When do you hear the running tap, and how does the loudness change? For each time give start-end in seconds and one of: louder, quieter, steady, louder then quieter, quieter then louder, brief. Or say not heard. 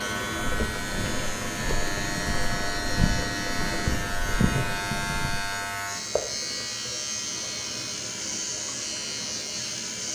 0.0-10.1 quieter.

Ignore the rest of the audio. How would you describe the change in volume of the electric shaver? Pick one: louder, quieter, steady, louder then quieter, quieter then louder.
steady.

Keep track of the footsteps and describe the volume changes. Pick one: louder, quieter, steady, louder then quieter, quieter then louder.
louder.